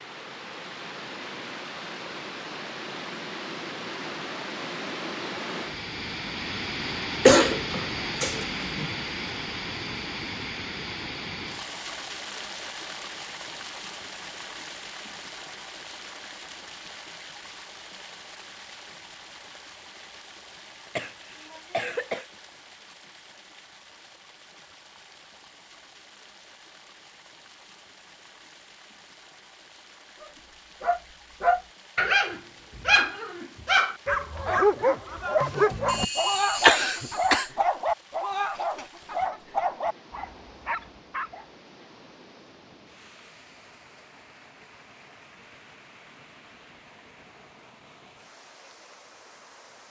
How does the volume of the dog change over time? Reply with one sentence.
The volume of the dog goes down.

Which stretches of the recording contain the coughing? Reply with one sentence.
The coughing can be heard from 7.2 to 8.8 s, from 20.9 to 22.2 s and from 35.9 to 37.5 s.